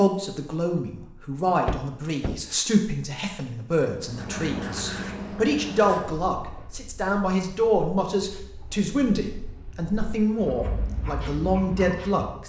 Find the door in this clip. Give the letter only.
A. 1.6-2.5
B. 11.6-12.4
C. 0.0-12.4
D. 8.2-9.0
A.